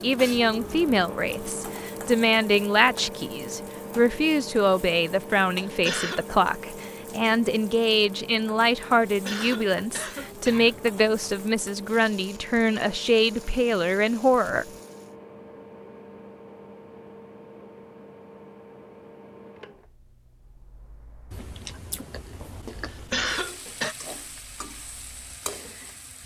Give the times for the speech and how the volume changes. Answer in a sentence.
The speech can be heard from 0.0 to 14.7 s, at a steady volume.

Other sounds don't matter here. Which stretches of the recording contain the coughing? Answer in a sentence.
You can hear the coughing from 5.6 to 6.2 s, from 9.1 to 10.8 s and from 22.9 to 23.9 s.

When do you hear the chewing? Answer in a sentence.
You can hear the chewing from 21.3 to 23.3 s.